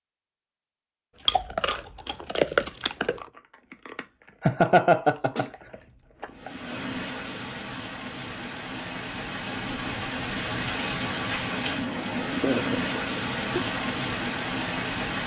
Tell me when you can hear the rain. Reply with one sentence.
The rain can be heard from 6.3 to 15.2 s.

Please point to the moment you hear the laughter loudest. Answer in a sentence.
The volume of the laughter peaks at 5 seconds.